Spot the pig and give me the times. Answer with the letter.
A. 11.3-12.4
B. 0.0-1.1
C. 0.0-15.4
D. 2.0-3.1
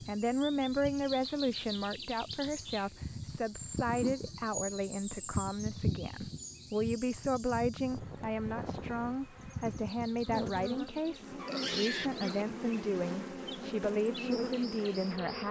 A.